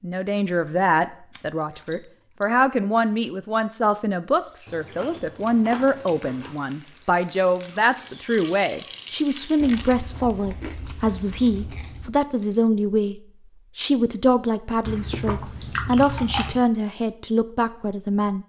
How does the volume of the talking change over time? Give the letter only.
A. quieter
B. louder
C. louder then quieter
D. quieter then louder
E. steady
E.